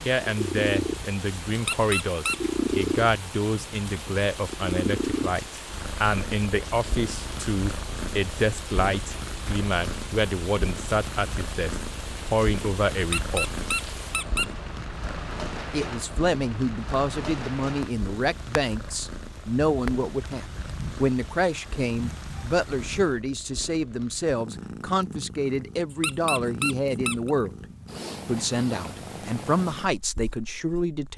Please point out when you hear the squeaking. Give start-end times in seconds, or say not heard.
1.6-2.4, 13.0-14.5, 25.9-27.3.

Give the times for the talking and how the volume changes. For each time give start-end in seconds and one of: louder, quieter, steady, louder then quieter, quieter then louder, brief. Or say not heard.
0.0-13.5 steady
15.7-27.5 steady
28.2-31.1 brief.